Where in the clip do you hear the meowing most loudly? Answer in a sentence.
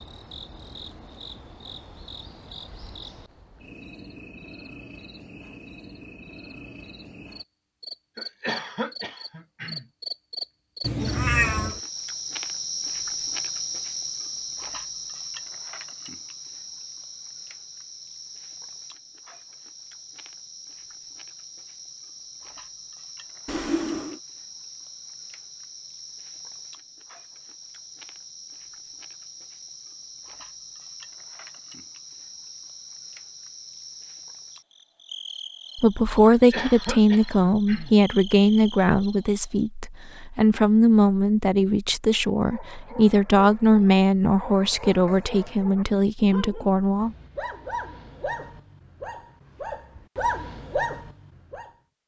The volume of the meowing peaks at 11 seconds.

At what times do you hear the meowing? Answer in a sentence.
The meowing can be heard from 10.8 to 11.8 s, from 23.4 to 24.2 s and from 44.6 to 45.5 s.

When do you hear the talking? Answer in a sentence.
You can hear the talking from 35.8 to 47.1 s.